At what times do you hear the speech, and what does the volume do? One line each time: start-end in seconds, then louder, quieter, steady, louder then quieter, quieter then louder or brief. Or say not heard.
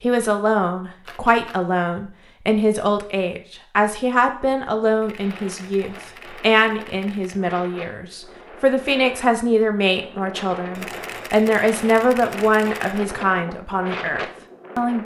0.0-14.9 steady.